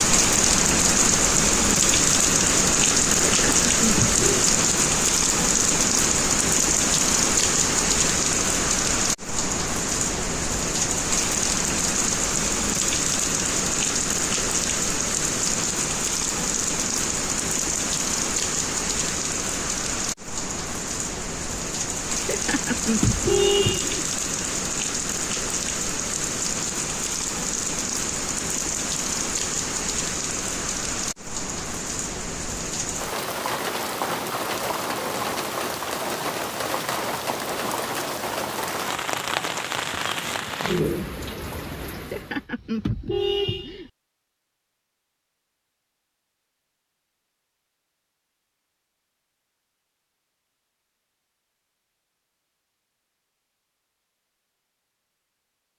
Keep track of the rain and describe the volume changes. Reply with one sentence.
The volume of the rain goes down.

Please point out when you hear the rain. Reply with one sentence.
The rain can be heard from 0.0 to 42.5 s.